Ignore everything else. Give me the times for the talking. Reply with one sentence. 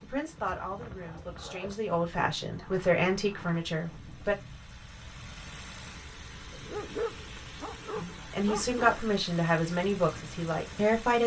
You can hear the talking from 0.0 to 4.3 s and from 8.0 to 11.2 s.